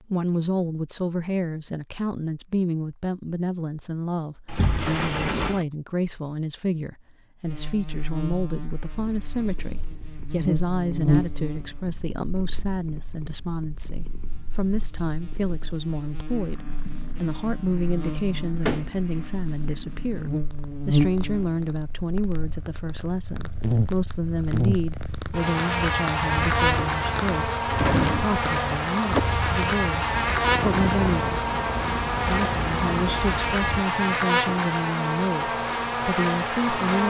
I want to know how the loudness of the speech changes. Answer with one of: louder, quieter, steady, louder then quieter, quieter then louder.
steady.